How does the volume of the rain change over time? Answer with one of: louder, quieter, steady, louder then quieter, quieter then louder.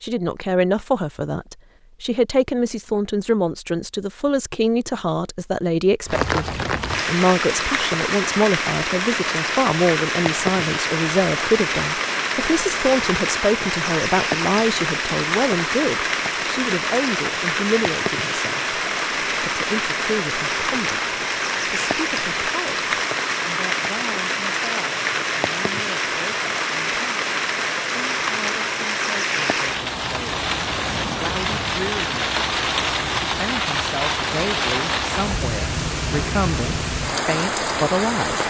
steady.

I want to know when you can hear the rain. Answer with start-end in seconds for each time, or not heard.
6.0-38.4.